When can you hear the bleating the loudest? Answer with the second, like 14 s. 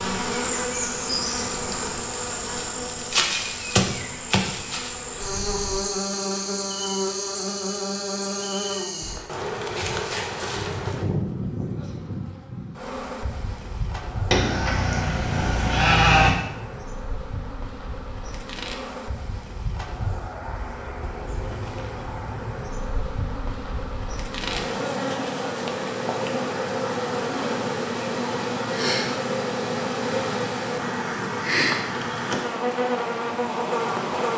16 s.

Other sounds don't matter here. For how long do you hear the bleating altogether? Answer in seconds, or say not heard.
2 s.